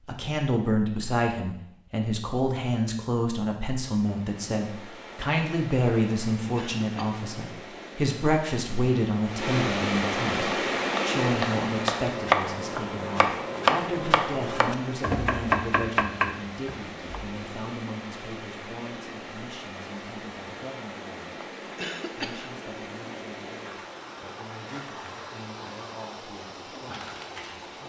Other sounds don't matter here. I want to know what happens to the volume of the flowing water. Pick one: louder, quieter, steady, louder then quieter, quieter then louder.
louder then quieter.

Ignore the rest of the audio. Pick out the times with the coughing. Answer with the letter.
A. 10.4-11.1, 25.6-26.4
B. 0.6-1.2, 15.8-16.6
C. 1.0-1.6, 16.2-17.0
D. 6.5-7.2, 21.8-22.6
D.